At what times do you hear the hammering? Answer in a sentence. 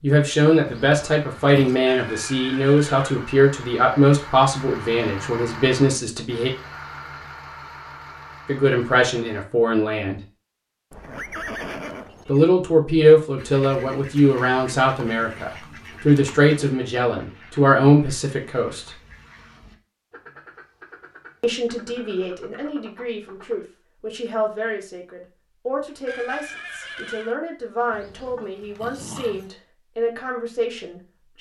You can't hear the hammering here.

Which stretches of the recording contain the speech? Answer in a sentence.
You can hear the speech from 0.0 to 6.5 s, from 8.4 to 10.2 s, from 12.2 to 19.0 s and from 21.4 to 31.3 s.